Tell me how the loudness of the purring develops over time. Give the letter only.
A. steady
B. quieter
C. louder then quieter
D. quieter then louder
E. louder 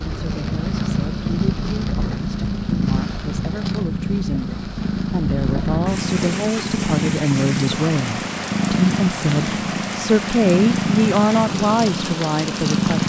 A.